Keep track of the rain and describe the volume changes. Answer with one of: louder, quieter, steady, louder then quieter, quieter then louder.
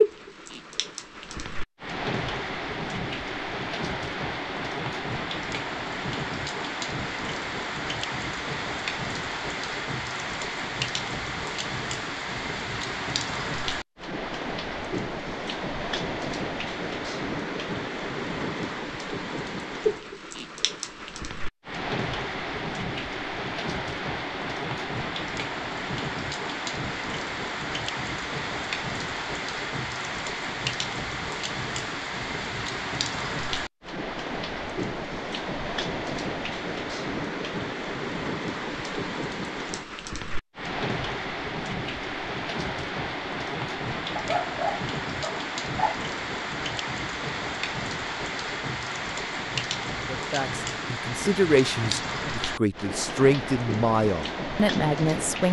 steady.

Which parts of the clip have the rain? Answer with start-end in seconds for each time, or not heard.
0.0-55.4.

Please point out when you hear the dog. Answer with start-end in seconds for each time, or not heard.
44.1-46.0.